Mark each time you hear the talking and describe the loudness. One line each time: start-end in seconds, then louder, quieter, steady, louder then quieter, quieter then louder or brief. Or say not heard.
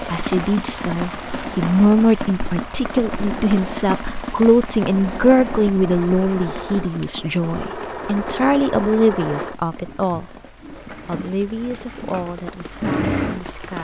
0.1-13.8 quieter.